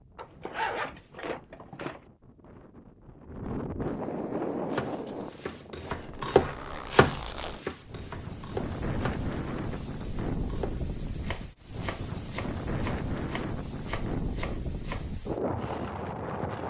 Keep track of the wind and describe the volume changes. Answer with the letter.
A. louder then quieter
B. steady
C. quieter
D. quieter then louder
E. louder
E.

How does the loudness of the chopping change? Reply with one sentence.
The loudness of the chopping goes down.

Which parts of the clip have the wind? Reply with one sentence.
The wind can be heard from 0.0 to 16.6 s.